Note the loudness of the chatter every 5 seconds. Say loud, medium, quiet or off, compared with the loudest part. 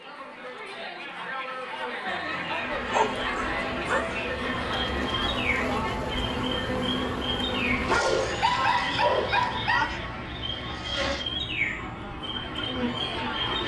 loud, loud, medium.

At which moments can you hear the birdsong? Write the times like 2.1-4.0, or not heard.
4.5-13.6.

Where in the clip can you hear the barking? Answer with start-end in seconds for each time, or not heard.
2.0-4.2, 7.8-10.0.